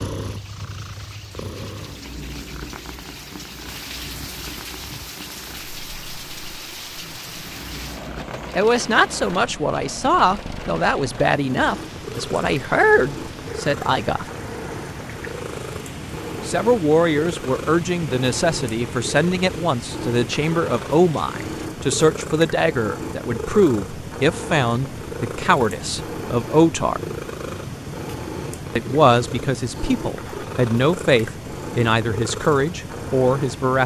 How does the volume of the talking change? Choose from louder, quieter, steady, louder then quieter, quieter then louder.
steady.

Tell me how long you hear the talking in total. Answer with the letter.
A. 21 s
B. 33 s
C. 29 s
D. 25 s
A.